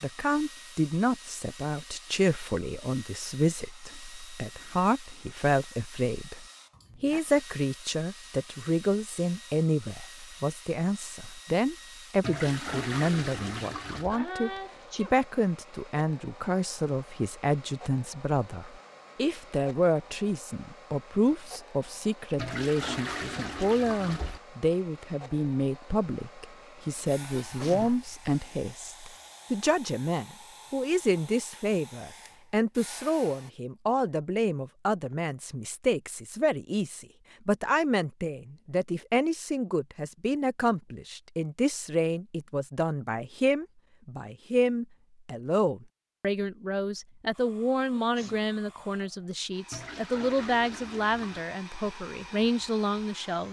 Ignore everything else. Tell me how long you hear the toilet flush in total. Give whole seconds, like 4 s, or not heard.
6 s.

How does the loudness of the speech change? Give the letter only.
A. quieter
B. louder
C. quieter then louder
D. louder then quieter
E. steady
E.